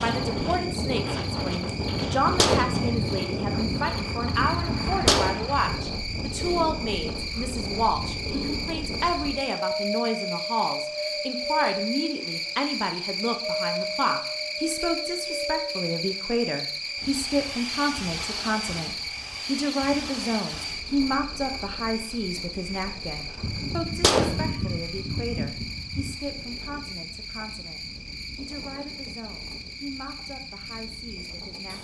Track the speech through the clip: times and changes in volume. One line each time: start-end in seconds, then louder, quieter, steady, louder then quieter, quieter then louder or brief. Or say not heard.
0.0-31.7 quieter.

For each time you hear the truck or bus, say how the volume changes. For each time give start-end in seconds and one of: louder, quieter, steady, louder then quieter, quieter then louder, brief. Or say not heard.
not heard.